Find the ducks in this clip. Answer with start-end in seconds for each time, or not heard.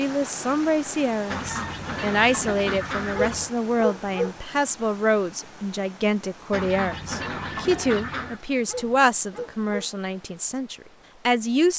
1.2-3.5, 6.5-8.4.